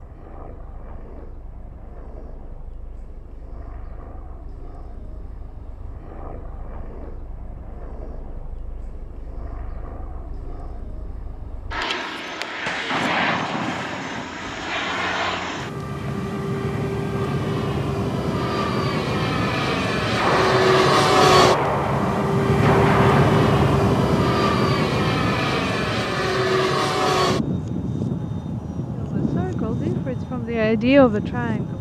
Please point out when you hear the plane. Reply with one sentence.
You can hear the plane from 0.0 to 31.7 s.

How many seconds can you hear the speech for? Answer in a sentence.
You can hear the speech for 3 seconds altogether.